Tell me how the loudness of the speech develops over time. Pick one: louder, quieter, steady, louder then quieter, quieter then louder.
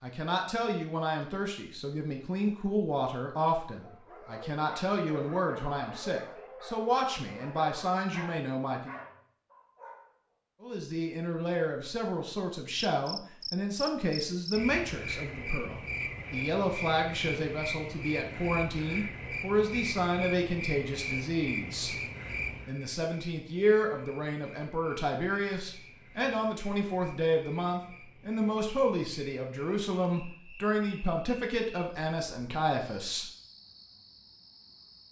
steady.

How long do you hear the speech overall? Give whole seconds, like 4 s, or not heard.
31 s.